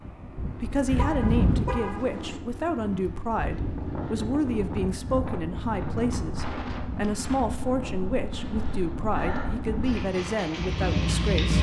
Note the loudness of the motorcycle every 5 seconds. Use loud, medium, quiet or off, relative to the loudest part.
quiet, medium, loud.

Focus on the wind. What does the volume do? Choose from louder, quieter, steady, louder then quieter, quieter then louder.
quieter.